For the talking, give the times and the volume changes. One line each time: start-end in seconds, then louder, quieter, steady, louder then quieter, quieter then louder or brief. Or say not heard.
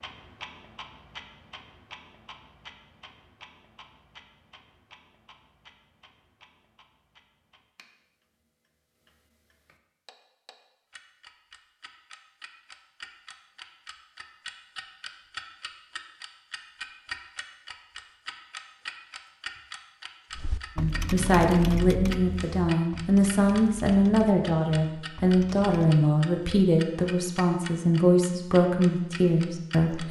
20.8-30.0 steady.